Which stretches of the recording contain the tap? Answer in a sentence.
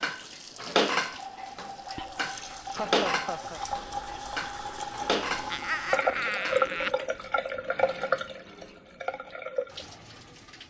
The tap can be heard from 0.0 to 10.6 s.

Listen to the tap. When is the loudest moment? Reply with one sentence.
The loudest moment of the tap is at 6 seconds.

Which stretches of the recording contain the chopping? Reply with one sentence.
You can't hear the chopping here.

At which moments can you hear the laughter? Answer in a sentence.
You can hear the laughter from 2.7 to 3.6 s and from 5.5 to 6.9 s.